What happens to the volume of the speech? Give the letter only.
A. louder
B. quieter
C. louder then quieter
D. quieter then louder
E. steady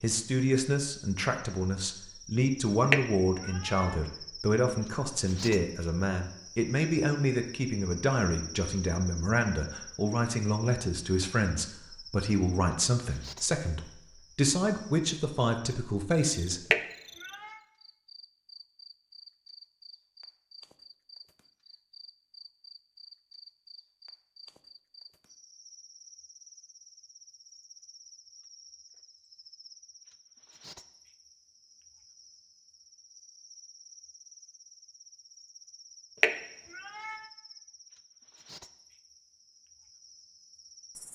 E.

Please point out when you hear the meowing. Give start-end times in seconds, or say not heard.
2.9-4.0, 16.7-17.6, 36.2-37.2.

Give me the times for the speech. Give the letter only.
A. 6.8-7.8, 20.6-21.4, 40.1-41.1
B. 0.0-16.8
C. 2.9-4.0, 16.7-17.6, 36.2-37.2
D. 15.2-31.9
B.